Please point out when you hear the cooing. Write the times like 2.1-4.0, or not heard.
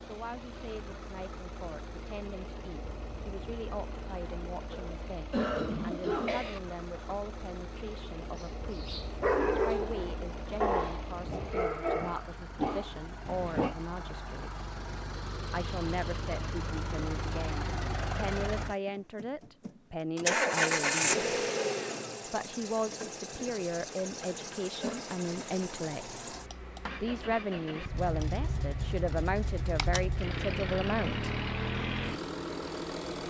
not heard.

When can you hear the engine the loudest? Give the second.
21 s.